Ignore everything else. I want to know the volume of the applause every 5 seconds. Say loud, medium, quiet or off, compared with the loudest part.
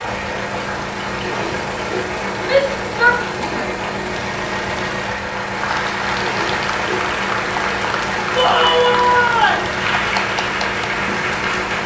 medium, loud, loud.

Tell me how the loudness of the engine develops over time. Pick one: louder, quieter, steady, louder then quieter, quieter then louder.
steady.